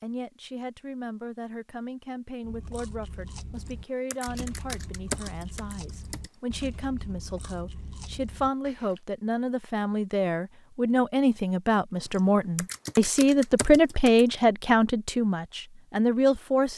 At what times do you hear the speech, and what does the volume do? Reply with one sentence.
You can hear the speech from 0.0 to 16.7 s, getting louder.